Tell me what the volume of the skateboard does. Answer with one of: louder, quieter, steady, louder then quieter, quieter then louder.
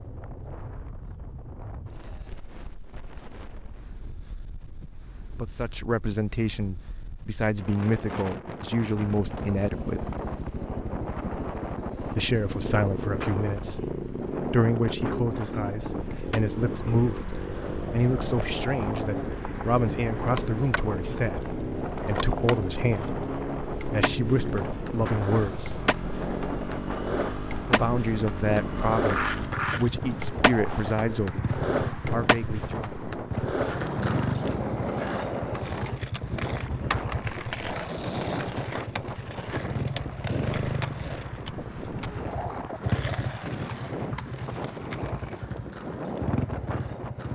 louder then quieter.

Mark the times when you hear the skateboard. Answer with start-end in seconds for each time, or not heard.
15.2-47.3.